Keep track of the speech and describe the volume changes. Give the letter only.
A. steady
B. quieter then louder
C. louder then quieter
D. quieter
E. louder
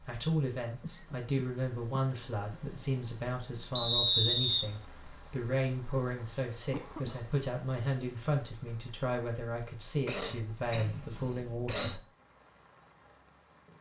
A.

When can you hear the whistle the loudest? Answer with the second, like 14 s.
4 s.